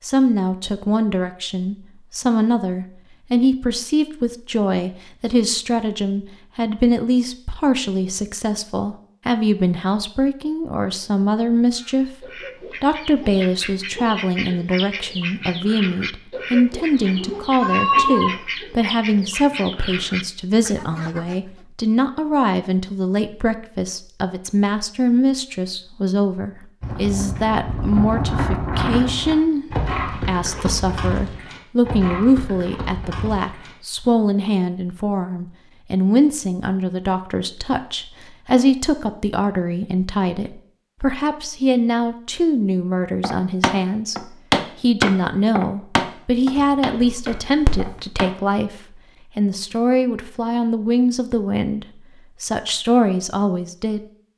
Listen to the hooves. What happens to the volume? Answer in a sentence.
The volume of the hooves goes down.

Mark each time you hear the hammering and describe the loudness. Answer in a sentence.
The hammering can be heard from 43.2 to 48.3 s, getting louder then quieter.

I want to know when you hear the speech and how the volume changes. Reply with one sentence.
The speech can be heard from 0.0 to 54.0 s, at a steady volume.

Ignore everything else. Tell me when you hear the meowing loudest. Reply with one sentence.
The loudest moment of the meowing is at 18 seconds.